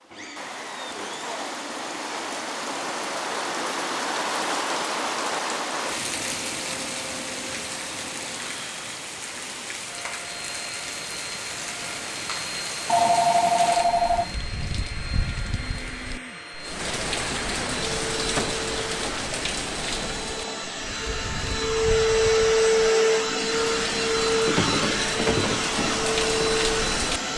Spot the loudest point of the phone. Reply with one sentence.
The loudest moment of the phone is at 13 seconds.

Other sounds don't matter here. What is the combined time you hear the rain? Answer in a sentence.
The rain can be heard for 27 seconds in total.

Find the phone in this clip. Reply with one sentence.
You can hear the phone from 12.8 to 14.3 s.